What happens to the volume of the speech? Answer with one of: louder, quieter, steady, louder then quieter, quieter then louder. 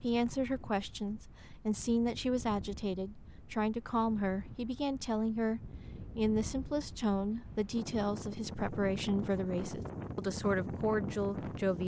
steady.